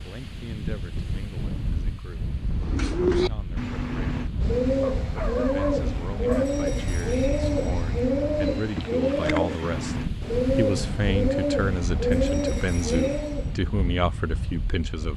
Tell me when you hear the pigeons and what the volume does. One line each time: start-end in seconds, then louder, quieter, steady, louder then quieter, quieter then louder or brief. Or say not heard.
2.5-13.6 steady.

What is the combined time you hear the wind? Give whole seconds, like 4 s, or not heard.
15 s.